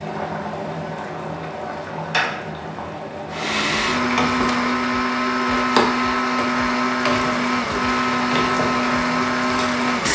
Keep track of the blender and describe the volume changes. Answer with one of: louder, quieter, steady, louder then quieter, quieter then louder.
steady.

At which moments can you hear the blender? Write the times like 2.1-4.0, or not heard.
3.3-10.1.